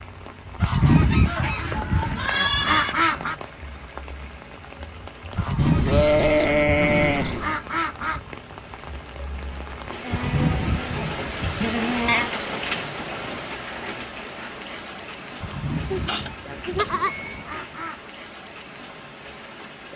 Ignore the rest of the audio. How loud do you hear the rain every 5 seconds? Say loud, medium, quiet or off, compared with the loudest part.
medium, medium, loud, medium.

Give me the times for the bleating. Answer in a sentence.
The bleating can be heard from 1.4 to 3.0 s, from 5.5 to 7.5 s, from 10.0 to 12.3 s and from 15.4 to 17.4 s.